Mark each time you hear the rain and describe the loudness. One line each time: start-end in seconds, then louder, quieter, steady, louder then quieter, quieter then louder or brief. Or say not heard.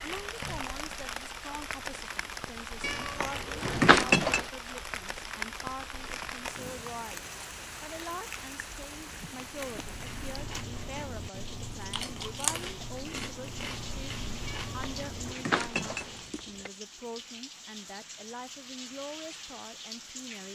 0.0-20.5 quieter.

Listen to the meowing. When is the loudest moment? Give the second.
4 s.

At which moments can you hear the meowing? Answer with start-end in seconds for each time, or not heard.
2.8-4.5, 14.4-16.7.